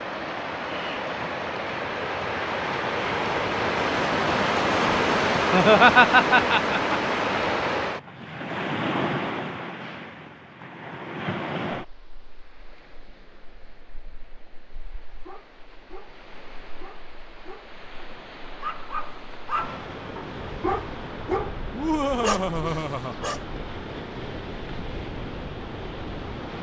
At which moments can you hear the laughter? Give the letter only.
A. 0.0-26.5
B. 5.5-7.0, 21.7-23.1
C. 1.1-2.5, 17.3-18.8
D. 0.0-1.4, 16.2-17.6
B.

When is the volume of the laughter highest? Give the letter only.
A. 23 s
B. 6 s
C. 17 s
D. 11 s
B.